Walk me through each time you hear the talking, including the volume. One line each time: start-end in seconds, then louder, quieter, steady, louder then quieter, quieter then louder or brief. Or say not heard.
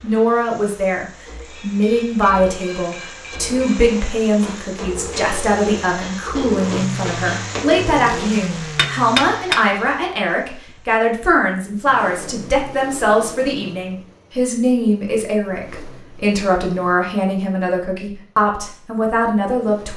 0.0-19.9 steady.